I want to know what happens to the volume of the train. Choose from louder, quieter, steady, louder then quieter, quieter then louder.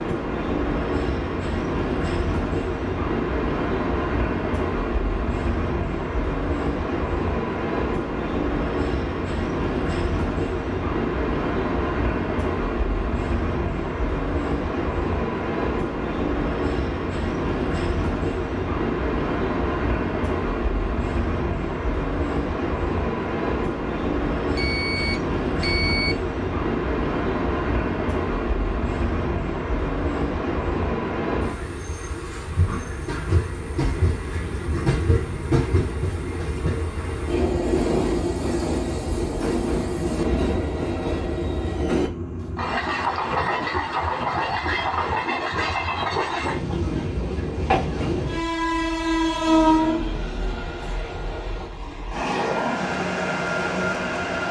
steady.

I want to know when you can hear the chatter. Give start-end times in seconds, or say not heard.
not heard.